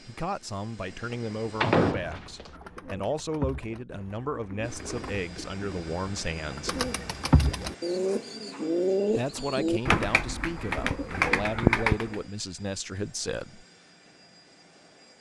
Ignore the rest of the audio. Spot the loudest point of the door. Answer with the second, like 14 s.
2 s.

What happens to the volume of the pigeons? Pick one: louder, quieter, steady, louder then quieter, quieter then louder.
louder.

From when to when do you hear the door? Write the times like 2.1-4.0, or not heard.
1.6-2.5, 9.3-10.1.